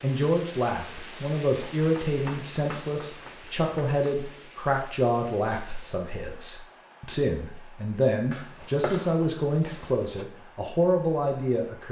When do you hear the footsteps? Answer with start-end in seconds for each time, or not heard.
not heard.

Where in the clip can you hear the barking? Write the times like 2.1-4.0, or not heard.
not heard.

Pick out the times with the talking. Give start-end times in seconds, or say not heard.
0.0-11.8.